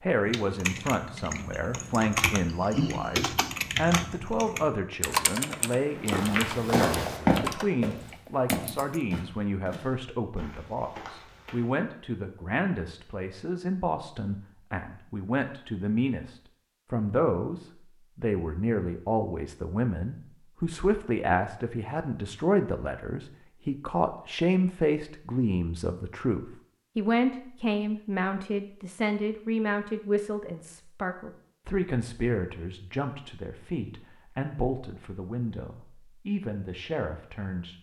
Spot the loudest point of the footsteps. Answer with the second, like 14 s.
7 s.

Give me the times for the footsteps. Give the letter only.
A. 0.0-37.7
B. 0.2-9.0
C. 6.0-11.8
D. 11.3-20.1
C.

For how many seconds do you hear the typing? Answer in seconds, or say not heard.
9 s.